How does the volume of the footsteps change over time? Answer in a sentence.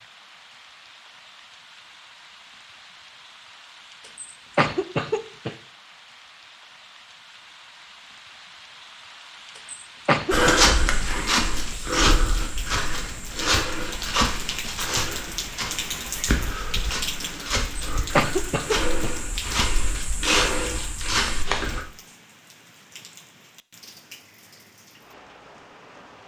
The loudness of the footsteps goes down, then up.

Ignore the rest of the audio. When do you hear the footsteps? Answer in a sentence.
You can hear the footsteps from 10.3 to 21.8 s.